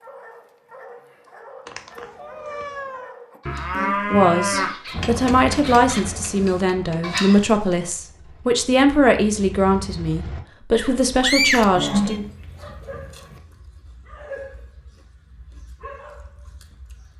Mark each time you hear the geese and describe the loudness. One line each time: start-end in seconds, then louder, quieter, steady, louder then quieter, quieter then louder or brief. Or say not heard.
not heard.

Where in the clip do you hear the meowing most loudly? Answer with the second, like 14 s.
11 s.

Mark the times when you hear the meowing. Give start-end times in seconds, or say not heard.
1.6-3.1, 10.8-12.2.